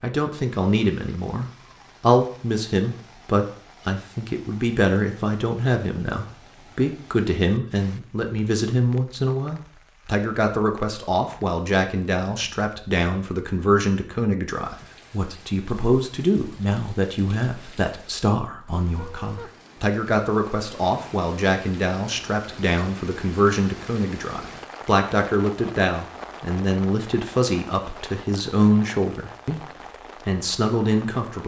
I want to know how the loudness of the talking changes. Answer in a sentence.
The loudness of the talking stays about the same.